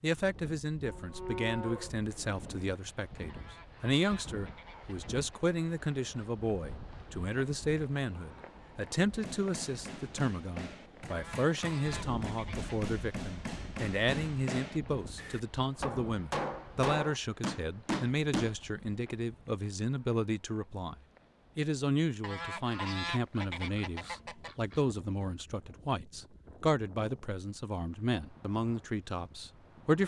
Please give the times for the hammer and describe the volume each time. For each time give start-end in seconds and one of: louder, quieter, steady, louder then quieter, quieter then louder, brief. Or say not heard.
9.1-18.6 louder.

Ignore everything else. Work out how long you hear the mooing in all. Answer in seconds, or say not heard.
2 s.